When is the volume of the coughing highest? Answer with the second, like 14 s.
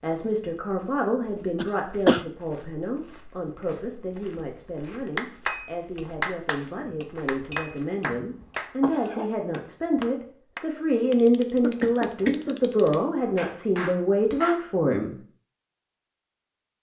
2 s.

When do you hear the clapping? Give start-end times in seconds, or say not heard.
4.8-14.7.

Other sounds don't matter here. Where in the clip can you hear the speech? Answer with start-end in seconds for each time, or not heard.
0.0-15.2.